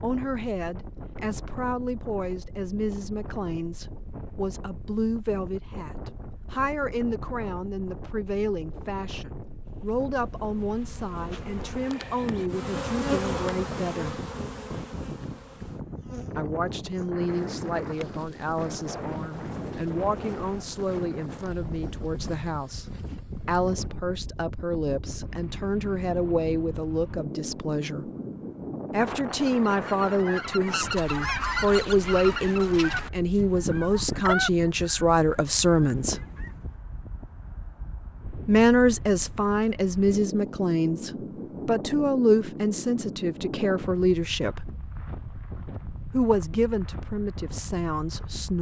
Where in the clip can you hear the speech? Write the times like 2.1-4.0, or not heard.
0.0-14.2, 16.4-22.9, 23.4-28.1, 28.9-36.2, 38.5-44.7, 46.1-48.5.